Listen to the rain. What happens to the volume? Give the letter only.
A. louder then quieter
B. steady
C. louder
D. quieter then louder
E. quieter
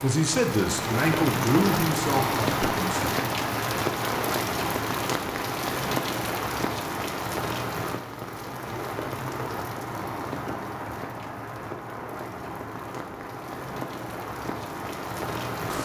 E.